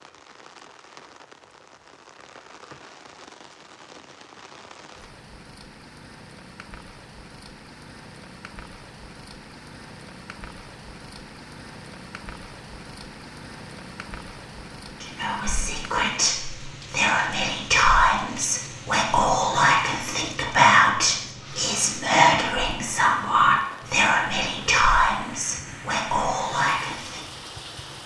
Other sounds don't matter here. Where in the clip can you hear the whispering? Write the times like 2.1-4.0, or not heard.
15.0-27.4.